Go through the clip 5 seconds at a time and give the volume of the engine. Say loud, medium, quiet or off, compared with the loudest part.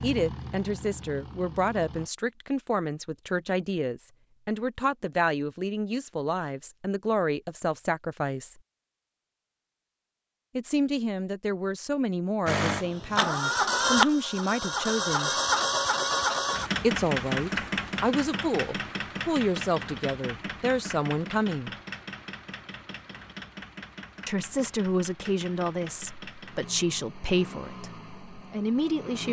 quiet, off, loud, loud, quiet, quiet.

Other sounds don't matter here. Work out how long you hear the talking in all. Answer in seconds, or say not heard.
23 s.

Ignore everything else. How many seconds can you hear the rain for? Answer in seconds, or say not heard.
not heard.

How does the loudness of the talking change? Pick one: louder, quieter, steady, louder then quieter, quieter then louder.
steady.